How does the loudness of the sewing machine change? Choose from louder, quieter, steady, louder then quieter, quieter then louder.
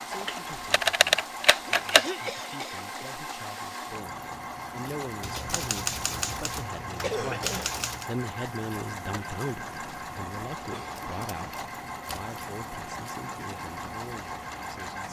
steady.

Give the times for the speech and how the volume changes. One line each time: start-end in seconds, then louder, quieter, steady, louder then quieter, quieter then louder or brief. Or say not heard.
0.1-15.0 louder then quieter.